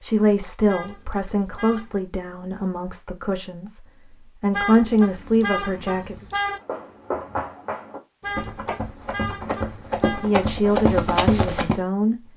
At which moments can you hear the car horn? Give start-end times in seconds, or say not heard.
0.7-2.0, 4.5-6.6, 8.2-10.3.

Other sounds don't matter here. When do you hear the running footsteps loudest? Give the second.
11 s.